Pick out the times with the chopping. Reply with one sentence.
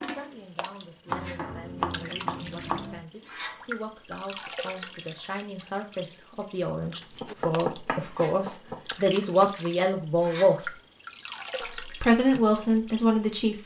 The chopping can be heard from 1.1 to 3.0 s and from 7.0 to 8.9 s.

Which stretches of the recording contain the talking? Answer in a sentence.
You can hear the talking from 0.0 to 10.7 s and from 11.8 to 13.6 s.